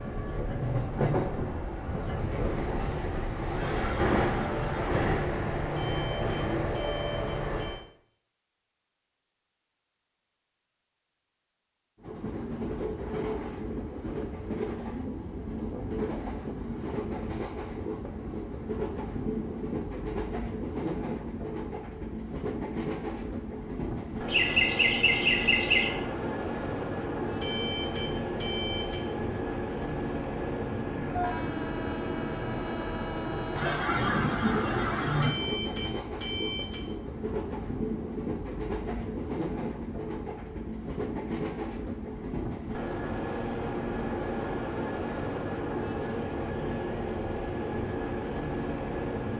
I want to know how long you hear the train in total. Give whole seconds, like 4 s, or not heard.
45 s.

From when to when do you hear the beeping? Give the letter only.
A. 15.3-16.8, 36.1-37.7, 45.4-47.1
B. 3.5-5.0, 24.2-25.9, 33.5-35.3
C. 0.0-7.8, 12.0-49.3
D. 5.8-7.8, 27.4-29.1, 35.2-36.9
D.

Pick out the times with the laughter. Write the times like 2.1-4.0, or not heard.
3.5-5.0, 24.2-25.9, 33.5-35.3.